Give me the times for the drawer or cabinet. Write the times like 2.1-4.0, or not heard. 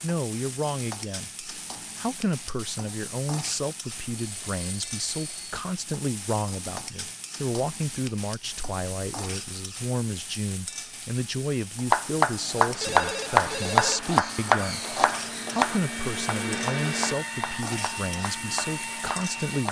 not heard.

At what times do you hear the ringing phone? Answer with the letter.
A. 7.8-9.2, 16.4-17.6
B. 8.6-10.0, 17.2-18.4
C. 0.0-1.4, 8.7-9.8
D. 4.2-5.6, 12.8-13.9
D.